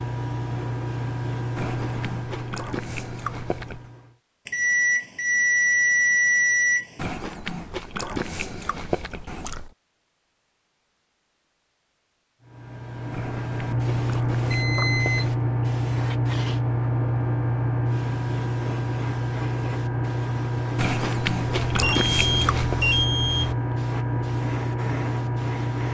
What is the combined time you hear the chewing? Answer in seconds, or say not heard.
9 s.